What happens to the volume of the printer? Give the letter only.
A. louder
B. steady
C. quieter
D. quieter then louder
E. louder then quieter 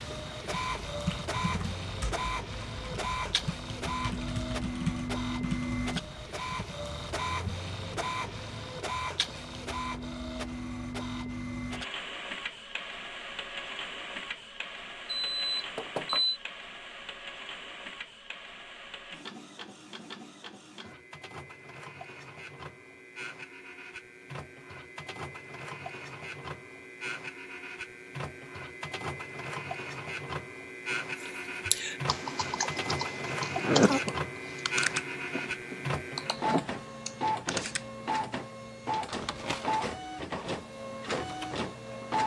D.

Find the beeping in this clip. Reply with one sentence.
The beeping can be heard from 15.1 to 16.4 s.